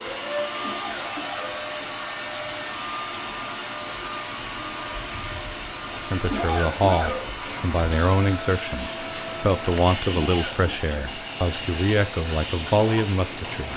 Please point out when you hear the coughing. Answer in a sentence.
You can hear the coughing from 0.6 to 1.9 s, from 6.3 to 7.5 s and from 10.2 to 10.9 s.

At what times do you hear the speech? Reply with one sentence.
The speech can be heard from 6.0 to 13.7 s.